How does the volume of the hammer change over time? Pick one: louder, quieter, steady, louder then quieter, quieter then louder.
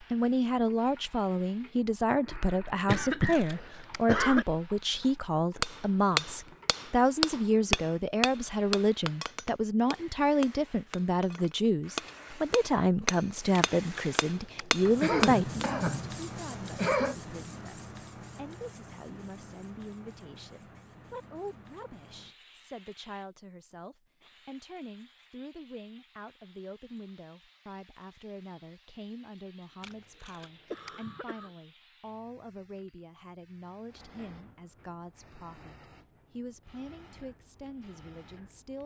quieter then louder.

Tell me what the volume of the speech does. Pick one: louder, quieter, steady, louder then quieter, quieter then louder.
quieter.